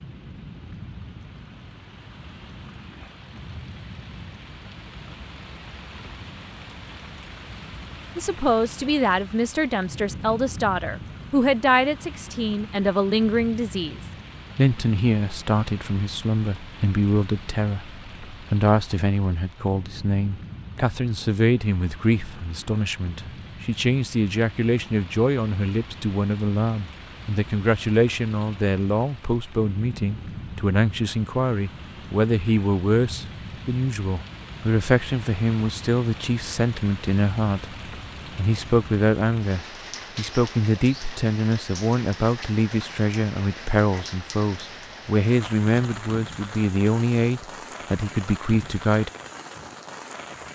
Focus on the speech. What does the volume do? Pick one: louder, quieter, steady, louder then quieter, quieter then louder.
steady.